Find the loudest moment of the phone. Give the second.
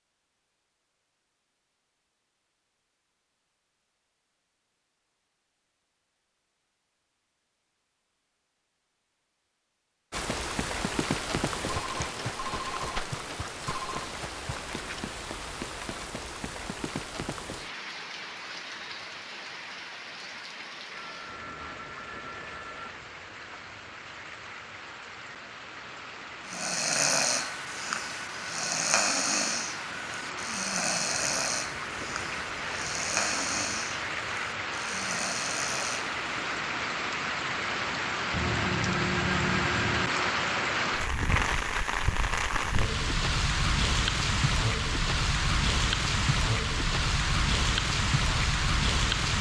39 s.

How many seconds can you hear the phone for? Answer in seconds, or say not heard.
6 s.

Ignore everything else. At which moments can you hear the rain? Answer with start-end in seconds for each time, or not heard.
10.1-49.3.